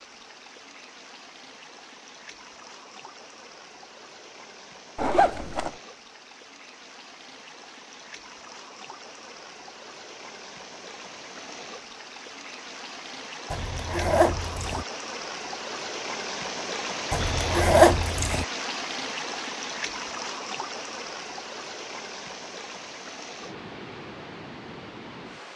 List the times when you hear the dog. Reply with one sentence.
You can't hear the dog here.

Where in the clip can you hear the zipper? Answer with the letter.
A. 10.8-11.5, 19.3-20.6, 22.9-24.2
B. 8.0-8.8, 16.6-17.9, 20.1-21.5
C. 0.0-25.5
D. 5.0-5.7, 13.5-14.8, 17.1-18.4
D.